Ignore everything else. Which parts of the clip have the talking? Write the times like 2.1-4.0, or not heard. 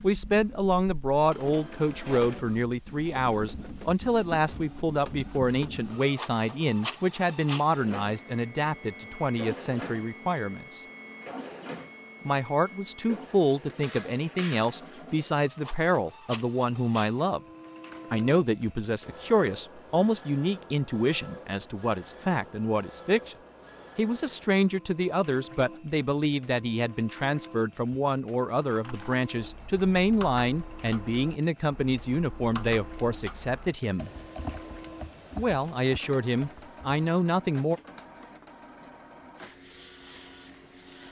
0.0-10.8, 12.2-17.4, 18.1-23.4, 23.9-34.1, 35.4-37.8.